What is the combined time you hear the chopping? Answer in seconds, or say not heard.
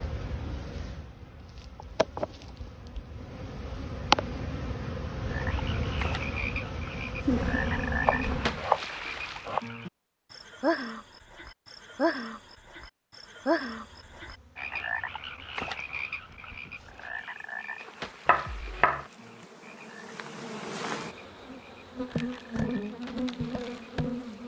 2 s.